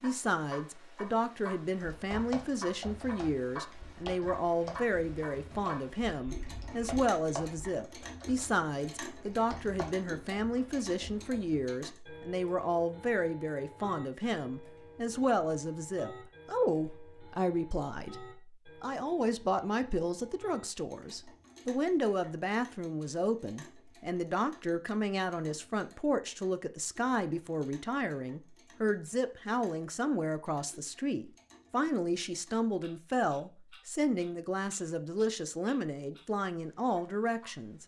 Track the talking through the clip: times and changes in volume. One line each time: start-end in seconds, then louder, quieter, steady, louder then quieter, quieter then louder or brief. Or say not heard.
0.0-37.8 steady.